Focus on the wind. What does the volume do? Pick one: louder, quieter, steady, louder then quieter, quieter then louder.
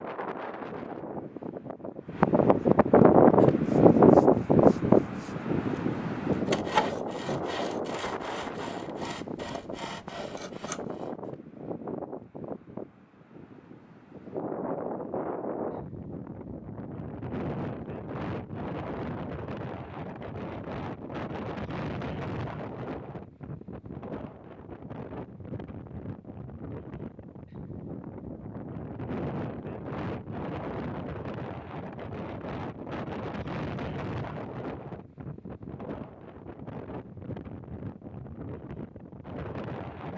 quieter.